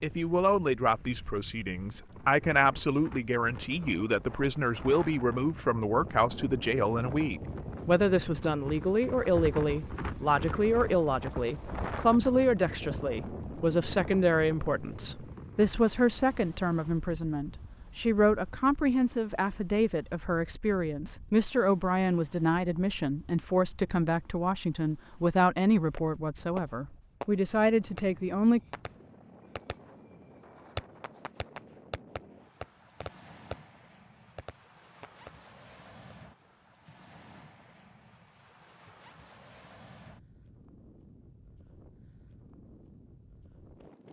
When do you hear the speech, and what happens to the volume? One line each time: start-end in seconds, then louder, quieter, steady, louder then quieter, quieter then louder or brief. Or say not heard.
0.0-28.6 steady.